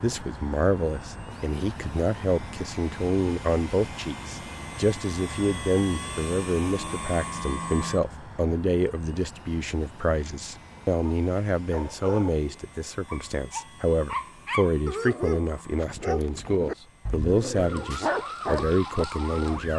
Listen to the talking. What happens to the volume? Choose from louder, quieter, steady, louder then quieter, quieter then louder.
steady.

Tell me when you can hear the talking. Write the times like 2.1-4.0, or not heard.
0.0-19.7.